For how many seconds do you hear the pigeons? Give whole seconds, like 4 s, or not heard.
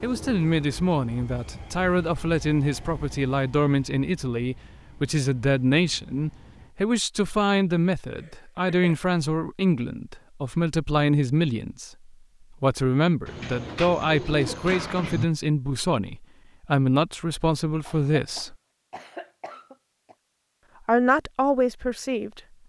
2 s.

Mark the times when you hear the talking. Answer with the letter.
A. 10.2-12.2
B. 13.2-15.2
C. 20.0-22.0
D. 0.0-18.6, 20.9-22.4
D.